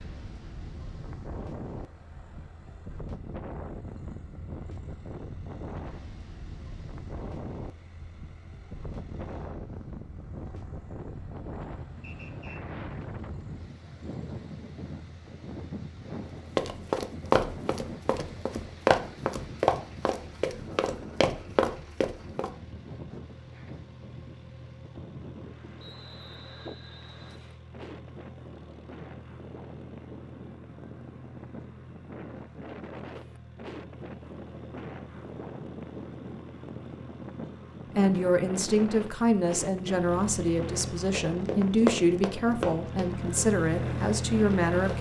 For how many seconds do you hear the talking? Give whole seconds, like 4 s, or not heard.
7 s.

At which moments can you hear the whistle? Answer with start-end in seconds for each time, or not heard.
12.0-12.6, 25.8-27.6.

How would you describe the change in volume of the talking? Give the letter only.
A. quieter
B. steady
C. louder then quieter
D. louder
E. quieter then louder
B.